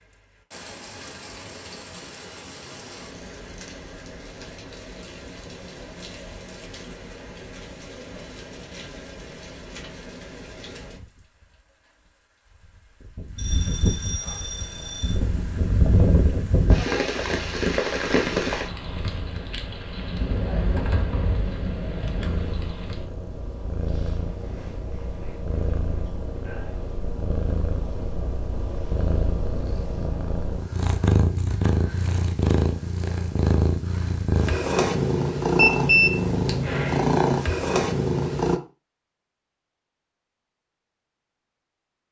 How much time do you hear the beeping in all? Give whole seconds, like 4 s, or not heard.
3 s.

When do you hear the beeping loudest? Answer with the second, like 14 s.
36 s.